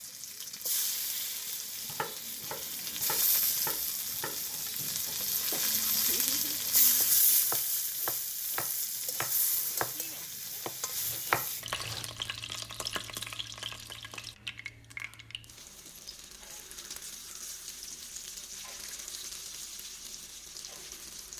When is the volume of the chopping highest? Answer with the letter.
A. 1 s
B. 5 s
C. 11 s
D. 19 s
C.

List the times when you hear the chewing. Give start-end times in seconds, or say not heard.
not heard.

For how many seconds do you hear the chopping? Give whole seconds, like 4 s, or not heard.
10 s.